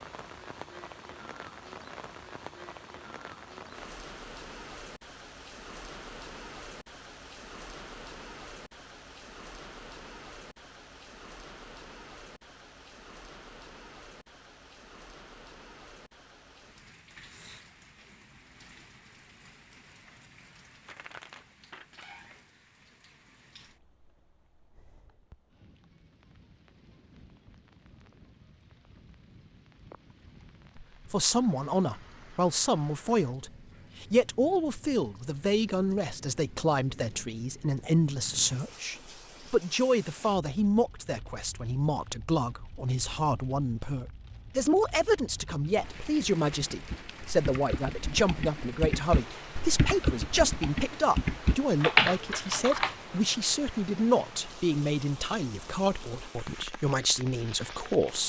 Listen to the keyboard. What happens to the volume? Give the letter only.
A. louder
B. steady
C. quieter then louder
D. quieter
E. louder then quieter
A.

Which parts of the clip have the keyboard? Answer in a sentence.
You can hear the keyboard from 45.5 to 53.0 s.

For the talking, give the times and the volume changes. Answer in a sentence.
The talking can be heard from 30.8 to 58.2 s, at a steady volume.